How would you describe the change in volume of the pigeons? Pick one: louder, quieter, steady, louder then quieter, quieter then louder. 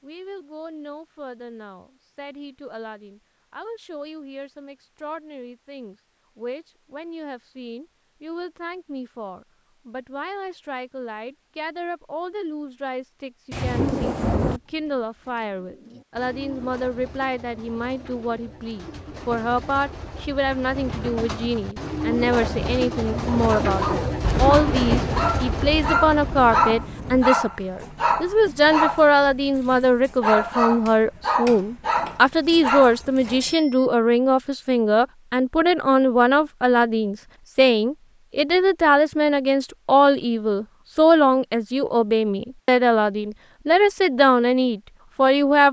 louder.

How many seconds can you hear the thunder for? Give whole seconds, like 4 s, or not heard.
4 s.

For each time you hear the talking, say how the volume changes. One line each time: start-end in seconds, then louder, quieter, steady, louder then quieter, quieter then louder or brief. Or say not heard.
0.0-45.6 louder.